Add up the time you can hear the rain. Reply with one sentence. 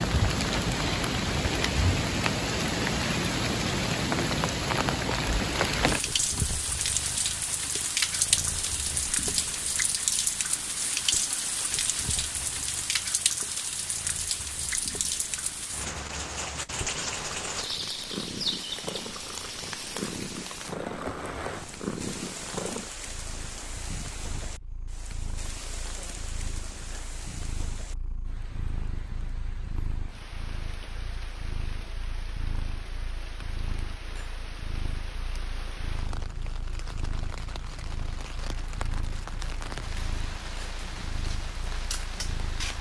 You can hear the rain for 43 seconds altogether.